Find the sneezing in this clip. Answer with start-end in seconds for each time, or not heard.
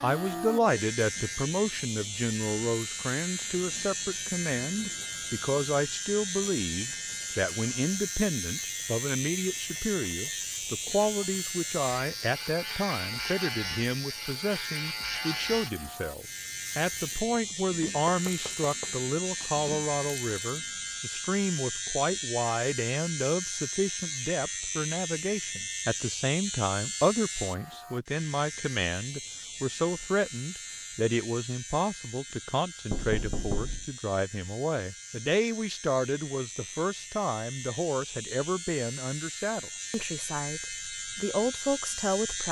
not heard.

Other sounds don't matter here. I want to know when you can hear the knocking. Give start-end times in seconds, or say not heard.
18.1-19.6, 32.9-33.9.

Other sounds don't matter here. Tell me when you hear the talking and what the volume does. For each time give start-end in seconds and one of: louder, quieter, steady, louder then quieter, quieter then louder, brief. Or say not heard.
0.0-42.4 steady.